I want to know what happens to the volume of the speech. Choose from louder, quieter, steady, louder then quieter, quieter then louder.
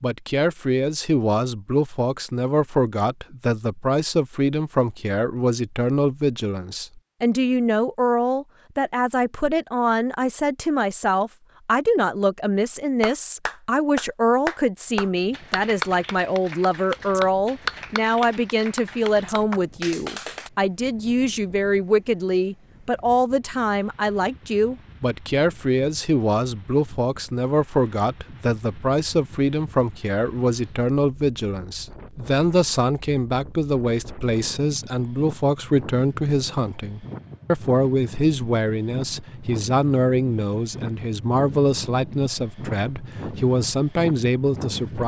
steady.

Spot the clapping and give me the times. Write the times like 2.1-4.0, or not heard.
13.0-20.5.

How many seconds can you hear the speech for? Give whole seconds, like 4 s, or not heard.
45 s.